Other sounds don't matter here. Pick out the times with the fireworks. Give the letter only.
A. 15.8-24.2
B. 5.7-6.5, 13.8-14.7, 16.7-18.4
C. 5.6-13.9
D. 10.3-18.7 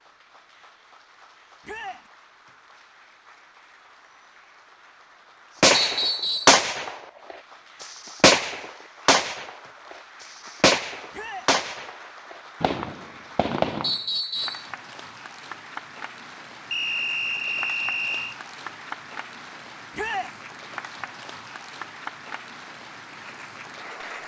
C.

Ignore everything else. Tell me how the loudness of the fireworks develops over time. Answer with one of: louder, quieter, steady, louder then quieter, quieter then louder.
quieter.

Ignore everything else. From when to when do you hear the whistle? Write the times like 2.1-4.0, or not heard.
5.7-6.5, 13.8-14.7, 16.7-18.4.